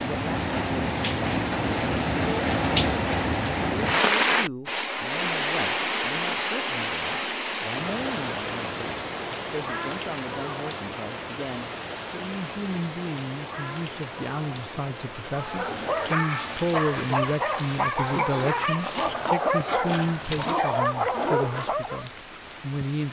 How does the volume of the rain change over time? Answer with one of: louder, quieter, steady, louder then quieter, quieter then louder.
quieter.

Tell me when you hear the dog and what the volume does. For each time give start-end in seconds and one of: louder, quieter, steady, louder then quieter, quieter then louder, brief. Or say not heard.
15.2-22.1 steady.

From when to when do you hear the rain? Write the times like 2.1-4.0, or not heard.
0.0-23.0.